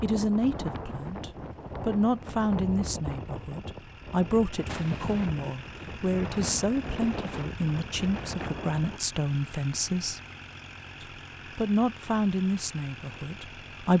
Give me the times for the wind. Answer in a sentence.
The wind can be heard from 0.0 to 9.0 s.